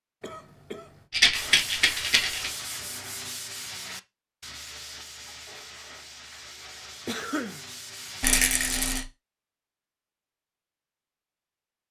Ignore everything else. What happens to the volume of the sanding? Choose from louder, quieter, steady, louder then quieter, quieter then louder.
quieter.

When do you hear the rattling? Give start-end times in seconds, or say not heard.
1.1-2.5, 8.2-9.1.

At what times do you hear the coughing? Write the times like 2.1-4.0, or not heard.
0.2-1.1, 7.0-7.6.